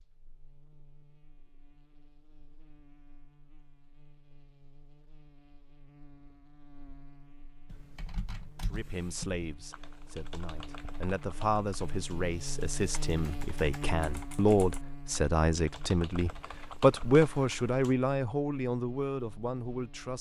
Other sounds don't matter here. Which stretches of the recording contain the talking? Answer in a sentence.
The talking can be heard from 8.7 to 20.1 s.